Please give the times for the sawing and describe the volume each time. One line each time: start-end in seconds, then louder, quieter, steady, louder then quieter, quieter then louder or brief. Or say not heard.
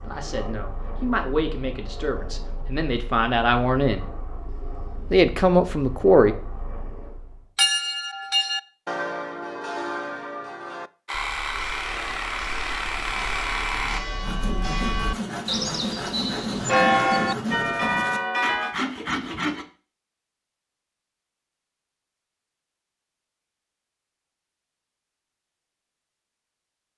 11.1-19.6 steady.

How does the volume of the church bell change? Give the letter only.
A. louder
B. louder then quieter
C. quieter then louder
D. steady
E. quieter
C.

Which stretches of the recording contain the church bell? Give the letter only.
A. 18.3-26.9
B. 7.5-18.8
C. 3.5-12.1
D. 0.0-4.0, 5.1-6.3
B.